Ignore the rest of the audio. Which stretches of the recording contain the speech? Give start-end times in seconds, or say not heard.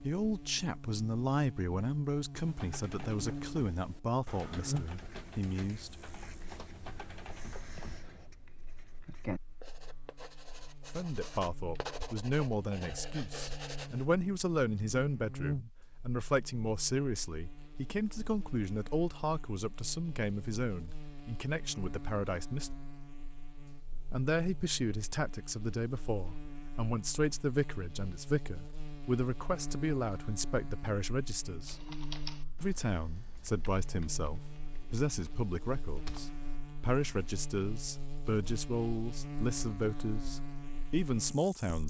0.0-6.0, 10.9-22.7, 24.1-31.8, 32.6-41.8.